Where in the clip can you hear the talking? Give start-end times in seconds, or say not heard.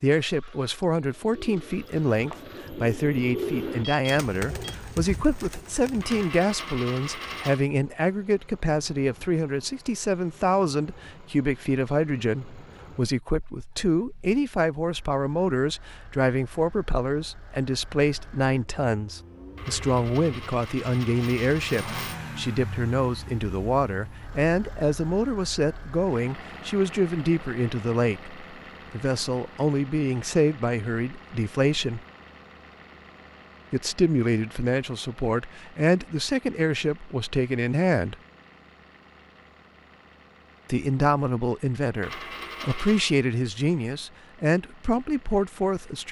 0.0-32.0, 33.7-38.1, 40.6-46.0.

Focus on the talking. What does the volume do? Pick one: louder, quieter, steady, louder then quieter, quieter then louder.
steady.